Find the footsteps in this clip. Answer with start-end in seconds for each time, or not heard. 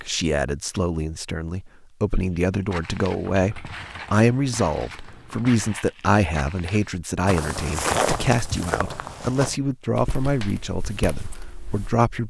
2.6-11.9.